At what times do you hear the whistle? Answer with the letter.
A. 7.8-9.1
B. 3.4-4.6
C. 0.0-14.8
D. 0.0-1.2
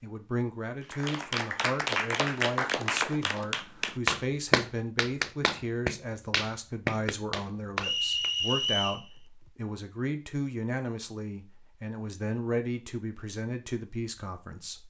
A.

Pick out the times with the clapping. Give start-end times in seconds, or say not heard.
0.8-8.3.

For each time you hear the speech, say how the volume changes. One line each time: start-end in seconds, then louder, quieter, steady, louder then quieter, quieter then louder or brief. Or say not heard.
0.0-14.8 steady.